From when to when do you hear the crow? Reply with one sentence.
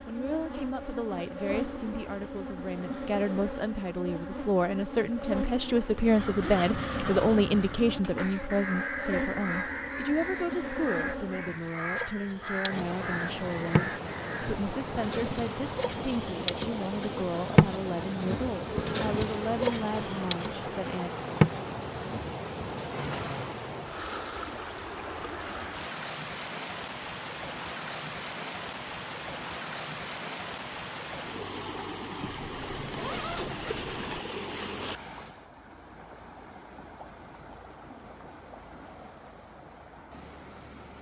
You can hear the crow from 6.0 to 14.6 s.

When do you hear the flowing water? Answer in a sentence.
You can hear the flowing water from 12.7 to 40.9 s.